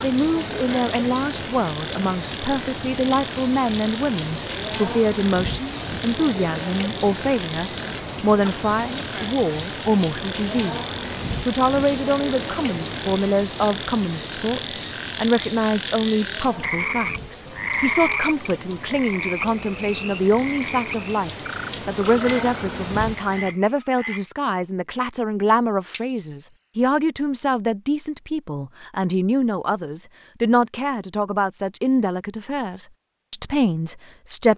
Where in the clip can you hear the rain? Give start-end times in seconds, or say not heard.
0.0-23.6.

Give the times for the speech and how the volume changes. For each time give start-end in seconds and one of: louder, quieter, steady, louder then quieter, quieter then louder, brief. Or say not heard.
0.0-34.5 steady.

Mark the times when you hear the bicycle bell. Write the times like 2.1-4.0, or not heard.
25.9-26.9.